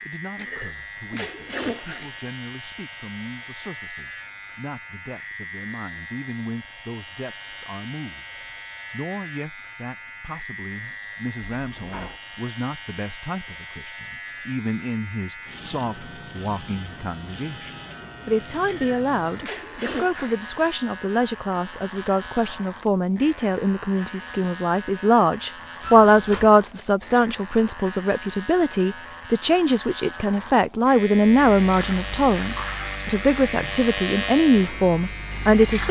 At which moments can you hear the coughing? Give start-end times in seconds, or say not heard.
0.3-2.1, 18.6-20.4.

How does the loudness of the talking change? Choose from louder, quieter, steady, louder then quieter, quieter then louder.
louder.